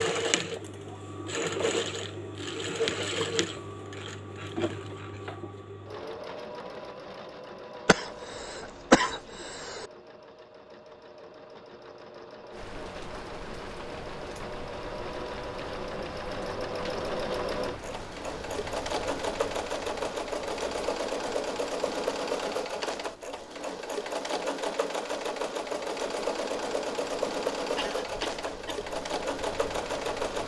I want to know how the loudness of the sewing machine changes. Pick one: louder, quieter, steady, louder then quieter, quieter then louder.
quieter then louder.